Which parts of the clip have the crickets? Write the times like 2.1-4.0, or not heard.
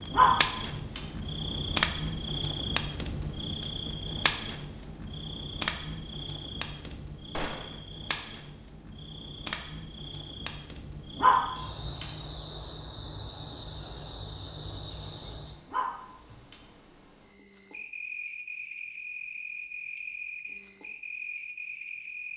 0.0-22.3.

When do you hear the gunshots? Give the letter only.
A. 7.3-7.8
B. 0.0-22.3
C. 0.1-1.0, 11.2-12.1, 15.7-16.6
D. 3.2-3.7
A.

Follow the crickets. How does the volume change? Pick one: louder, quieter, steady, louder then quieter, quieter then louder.
quieter.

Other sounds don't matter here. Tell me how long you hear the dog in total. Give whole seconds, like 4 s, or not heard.
3 s.